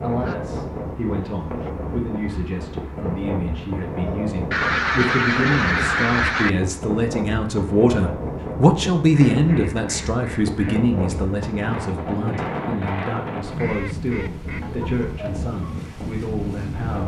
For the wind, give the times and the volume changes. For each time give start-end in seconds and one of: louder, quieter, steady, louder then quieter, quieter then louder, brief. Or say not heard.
0.0-17.0 steady.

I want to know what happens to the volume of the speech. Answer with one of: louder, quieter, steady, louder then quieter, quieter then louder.
louder then quieter.